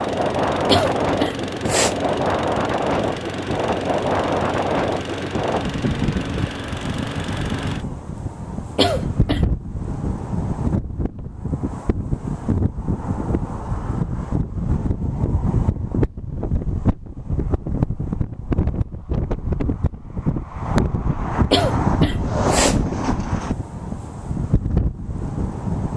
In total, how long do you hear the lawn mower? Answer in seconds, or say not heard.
8 s.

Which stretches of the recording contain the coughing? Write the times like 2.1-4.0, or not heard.
0.7-1.9, 8.8-9.4, 21.5-22.8.